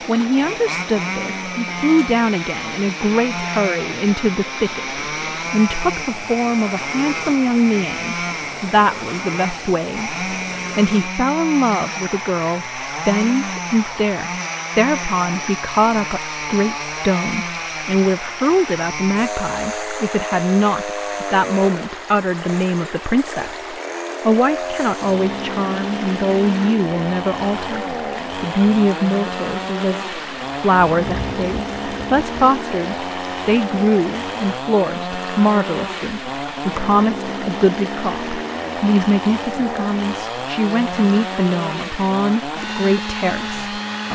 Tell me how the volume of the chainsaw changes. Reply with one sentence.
The loudness of the chainsaw stays about the same.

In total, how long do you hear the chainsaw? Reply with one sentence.
You can hear the chainsaw for 44 seconds altogether.